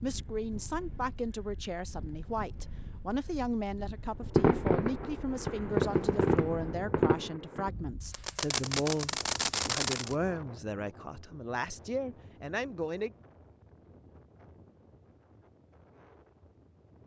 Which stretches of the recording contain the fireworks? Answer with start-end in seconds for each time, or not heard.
4.3-10.2.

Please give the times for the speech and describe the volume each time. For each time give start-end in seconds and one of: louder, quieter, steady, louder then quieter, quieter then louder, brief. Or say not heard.
0.0-13.1 steady.